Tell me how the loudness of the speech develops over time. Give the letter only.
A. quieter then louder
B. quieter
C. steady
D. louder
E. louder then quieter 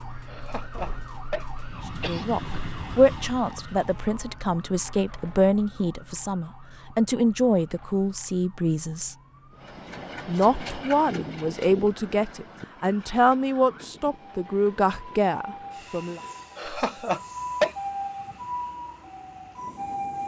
C.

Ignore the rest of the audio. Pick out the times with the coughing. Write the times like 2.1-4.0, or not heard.
0.2-2.2, 16.6-17.8.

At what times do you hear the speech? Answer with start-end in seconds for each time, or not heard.
2.0-9.2, 10.2-16.2.